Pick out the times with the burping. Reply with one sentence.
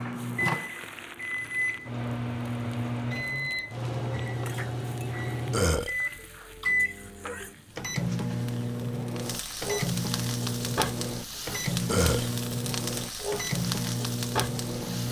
You can hear the burping from 5.5 to 6.0 s and from 11.8 to 12.3 s.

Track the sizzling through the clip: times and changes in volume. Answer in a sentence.
You can hear the sizzling from 0.0 to 15.0 s, getting louder.